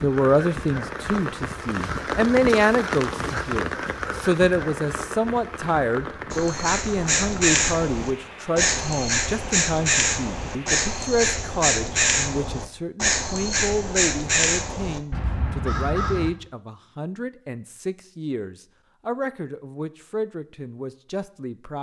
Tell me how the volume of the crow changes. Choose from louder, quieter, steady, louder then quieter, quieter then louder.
steady.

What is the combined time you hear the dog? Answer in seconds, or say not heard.
not heard.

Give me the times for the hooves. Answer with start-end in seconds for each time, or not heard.
not heard.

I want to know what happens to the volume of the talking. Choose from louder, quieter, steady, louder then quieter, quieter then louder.
quieter.